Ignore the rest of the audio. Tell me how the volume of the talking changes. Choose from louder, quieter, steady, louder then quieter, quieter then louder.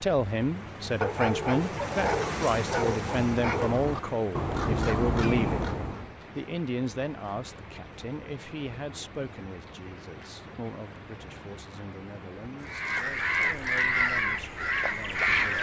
quieter.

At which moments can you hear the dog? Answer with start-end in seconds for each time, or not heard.
1.0-3.8.